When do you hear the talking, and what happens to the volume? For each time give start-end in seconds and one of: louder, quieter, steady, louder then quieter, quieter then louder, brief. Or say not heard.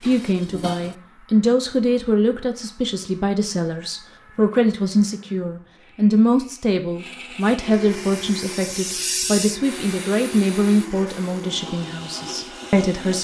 0.0-13.1 steady.